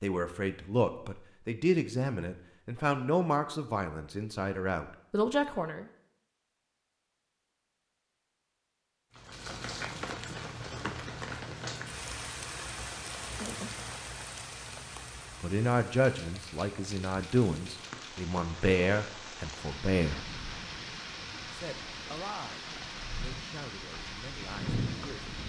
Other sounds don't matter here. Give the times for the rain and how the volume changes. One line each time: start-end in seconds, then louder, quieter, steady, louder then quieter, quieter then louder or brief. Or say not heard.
9.2-25.4 quieter then louder.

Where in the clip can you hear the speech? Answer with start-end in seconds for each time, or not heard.
0.0-5.8, 15.4-20.2, 21.4-25.4.